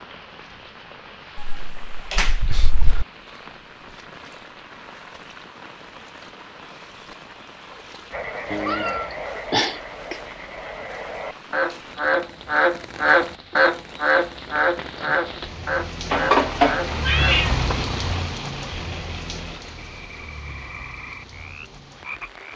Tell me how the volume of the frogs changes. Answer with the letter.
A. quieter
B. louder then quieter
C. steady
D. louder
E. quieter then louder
B.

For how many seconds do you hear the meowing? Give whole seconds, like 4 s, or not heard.
5 s.